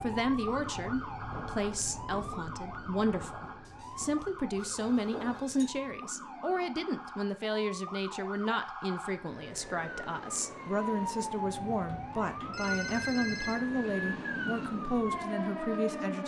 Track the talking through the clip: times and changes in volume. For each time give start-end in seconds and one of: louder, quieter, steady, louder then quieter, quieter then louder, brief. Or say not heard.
0.0-16.2 steady.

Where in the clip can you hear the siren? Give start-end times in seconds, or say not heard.
0.0-16.2.